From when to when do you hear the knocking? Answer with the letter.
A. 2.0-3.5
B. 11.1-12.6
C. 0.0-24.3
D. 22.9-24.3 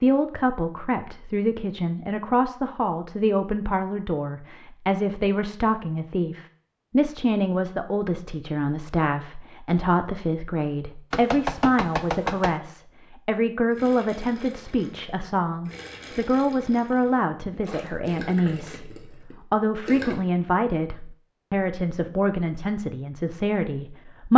B.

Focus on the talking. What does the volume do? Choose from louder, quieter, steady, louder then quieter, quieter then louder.
steady.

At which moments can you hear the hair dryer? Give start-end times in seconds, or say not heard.
not heard.